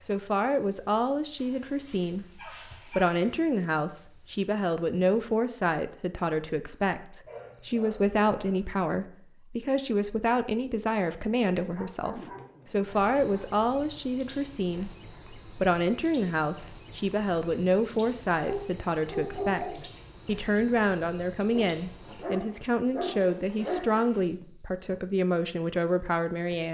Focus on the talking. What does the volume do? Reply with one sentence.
The volume of the talking stays about the same.